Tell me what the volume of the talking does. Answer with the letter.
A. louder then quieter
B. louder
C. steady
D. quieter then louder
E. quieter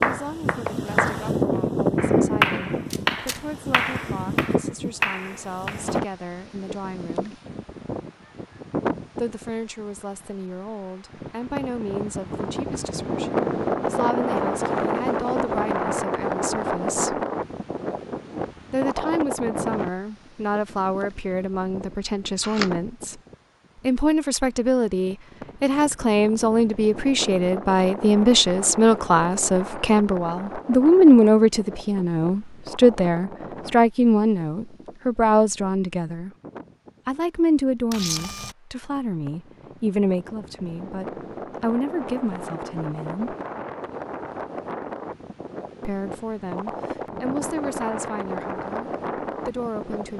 A.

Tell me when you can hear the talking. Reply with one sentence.
The talking can be heard from 0.0 to 7.3 s, from 9.2 to 17.2 s, from 18.7 to 23.2 s, from 23.8 to 36.3 s, from 37.0 to 43.4 s and from 45.8 to 50.1 s.